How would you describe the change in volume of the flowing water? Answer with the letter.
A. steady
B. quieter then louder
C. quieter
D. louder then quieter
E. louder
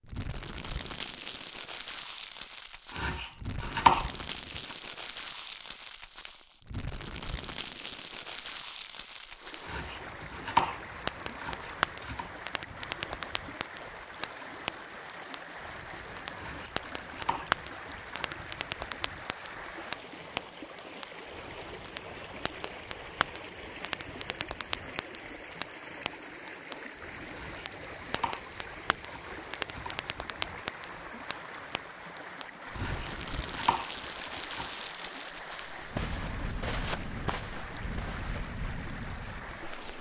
A.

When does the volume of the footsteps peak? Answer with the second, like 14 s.
37 s.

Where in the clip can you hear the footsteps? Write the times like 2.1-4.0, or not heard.
35.5-38.4.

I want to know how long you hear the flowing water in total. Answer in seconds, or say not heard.
31 s.